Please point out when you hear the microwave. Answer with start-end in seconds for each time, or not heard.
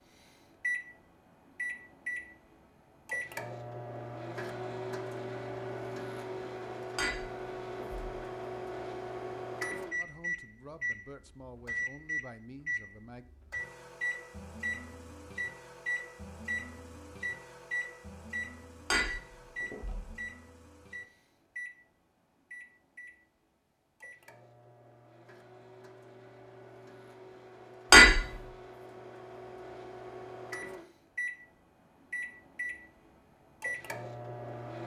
0.1-34.8.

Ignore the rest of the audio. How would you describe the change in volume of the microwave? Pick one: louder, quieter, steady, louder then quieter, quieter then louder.
quieter then louder.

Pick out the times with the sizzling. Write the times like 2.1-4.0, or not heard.
not heard.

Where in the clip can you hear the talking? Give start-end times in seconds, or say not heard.
9.9-13.3.